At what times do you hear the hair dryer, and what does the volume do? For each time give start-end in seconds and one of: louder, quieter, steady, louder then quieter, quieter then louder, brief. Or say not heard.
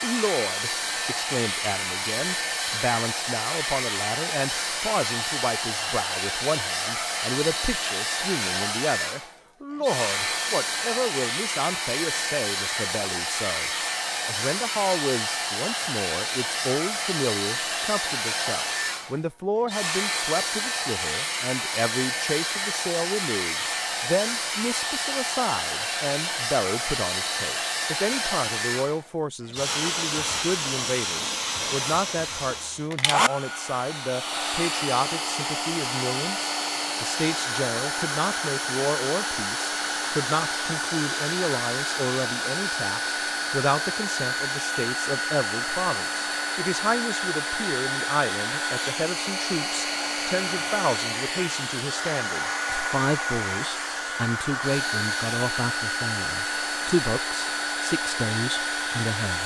0.0-59.4 steady.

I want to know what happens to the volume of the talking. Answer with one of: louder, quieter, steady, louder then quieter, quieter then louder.
steady.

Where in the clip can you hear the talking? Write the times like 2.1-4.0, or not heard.
0.0-59.4.